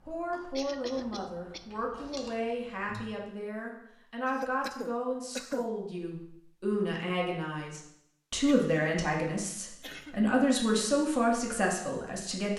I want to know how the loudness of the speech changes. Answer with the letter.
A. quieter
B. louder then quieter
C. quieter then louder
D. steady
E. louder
E.